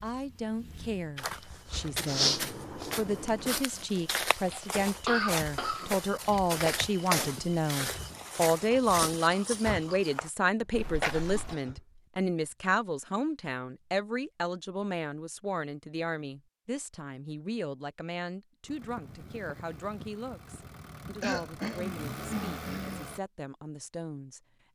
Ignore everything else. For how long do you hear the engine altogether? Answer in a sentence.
You can hear the engine for 6 seconds altogether.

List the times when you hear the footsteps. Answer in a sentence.
You can hear the footsteps from 1.1 to 11.6 s.